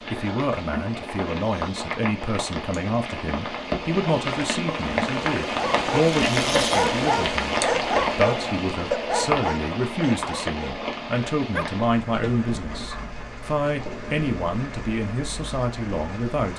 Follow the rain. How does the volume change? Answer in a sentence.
The loudness of the rain goes up, then down.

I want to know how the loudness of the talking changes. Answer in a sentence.
The volume of the talking stays about the same.